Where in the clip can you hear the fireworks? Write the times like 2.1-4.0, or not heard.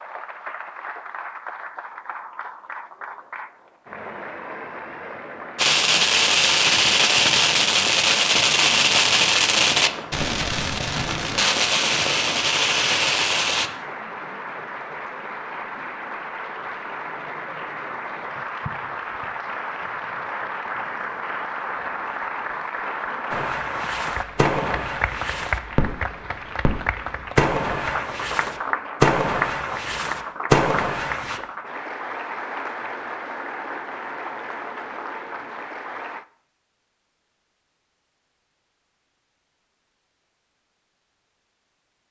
5.5-13.7, 23.3-31.4.